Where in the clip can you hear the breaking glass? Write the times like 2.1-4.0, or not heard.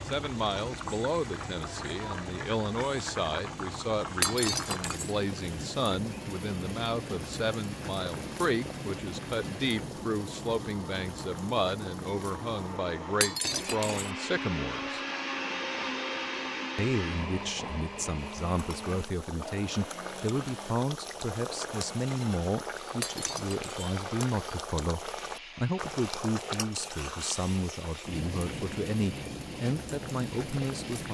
4.2-5.1, 13.2-14.1, 23.0-23.9.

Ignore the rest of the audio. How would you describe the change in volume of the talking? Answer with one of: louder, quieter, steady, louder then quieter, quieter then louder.
steady.